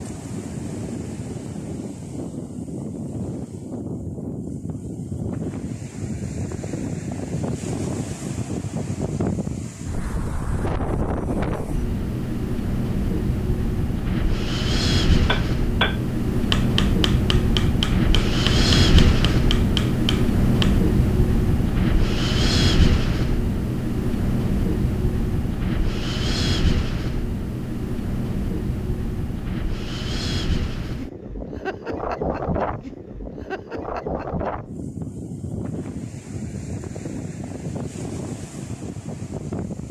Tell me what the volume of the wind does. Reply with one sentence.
The loudness of the wind goes up, then down.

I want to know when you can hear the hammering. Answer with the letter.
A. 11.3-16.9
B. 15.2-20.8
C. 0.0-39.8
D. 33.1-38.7
B.